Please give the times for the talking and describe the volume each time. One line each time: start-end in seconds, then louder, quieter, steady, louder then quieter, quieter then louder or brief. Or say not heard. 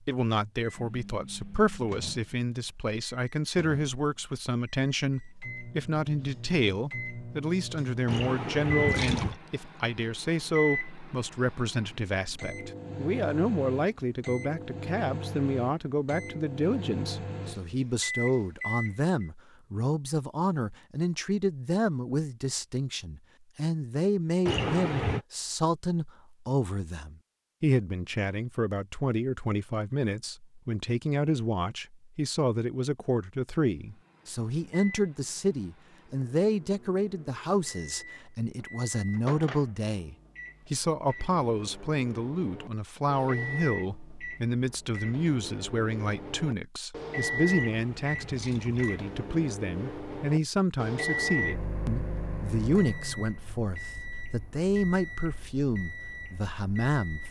0.1-57.2 steady.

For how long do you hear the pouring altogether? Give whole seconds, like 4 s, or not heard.
4 s.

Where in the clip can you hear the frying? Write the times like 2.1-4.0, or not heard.
not heard.